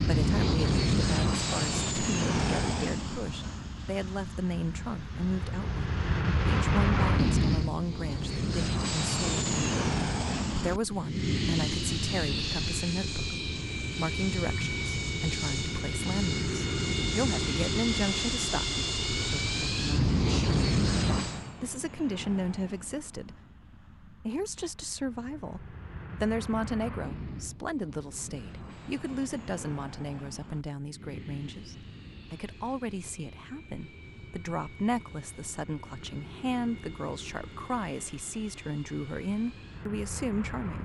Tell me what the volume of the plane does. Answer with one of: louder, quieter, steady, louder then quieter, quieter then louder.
quieter.